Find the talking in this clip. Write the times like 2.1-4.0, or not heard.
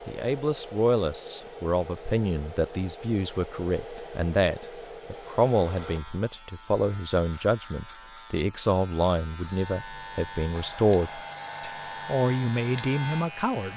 0.1-13.7.